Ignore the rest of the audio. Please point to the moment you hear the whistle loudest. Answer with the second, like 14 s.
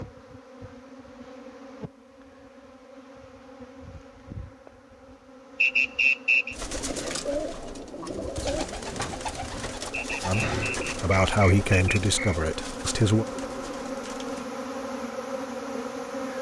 6 s.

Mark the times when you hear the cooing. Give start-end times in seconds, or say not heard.
6.5-14.5.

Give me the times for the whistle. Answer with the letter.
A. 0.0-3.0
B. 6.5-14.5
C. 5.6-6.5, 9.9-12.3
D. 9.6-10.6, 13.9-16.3
C.